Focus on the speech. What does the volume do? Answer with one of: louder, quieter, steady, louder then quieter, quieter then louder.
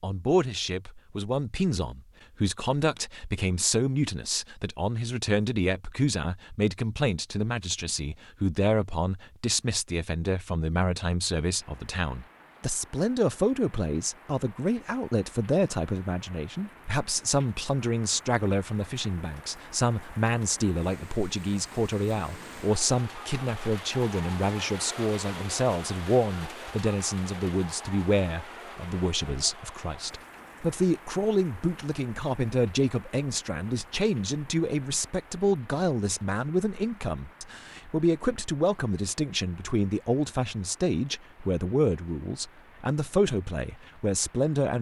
steady.